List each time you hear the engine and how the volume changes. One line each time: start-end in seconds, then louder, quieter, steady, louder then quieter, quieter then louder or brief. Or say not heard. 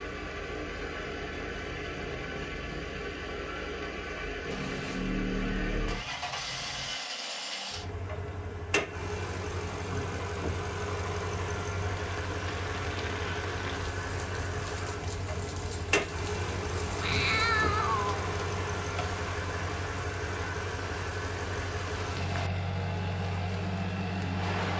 0.0-24.7 steady.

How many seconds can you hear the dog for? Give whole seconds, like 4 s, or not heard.
not heard.